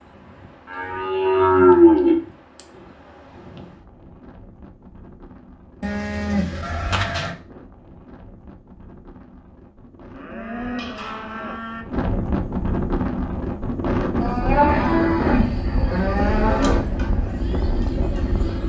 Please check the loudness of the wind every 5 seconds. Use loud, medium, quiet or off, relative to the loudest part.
quiet, quiet, loud, loud.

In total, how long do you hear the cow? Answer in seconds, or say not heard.
8 s.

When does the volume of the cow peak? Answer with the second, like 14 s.
2 s.